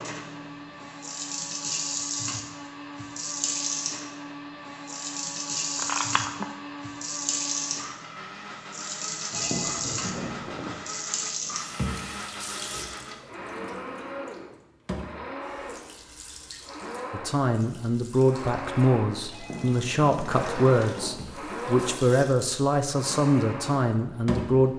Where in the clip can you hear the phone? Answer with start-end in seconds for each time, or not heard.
5.8-6.5, 9.3-10.8, 19.3-21.2.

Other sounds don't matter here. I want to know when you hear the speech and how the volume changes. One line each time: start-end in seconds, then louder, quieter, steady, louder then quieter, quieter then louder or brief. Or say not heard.
17.1-24.7 steady.